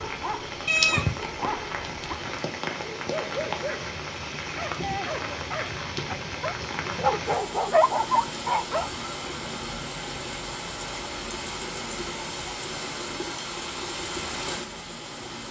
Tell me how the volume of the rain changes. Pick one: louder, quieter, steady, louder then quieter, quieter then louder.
steady.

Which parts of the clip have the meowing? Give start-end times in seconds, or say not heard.
0.7-1.2.